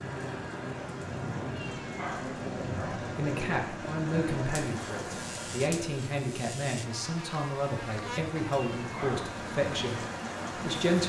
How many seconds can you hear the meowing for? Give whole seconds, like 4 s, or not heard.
2 s.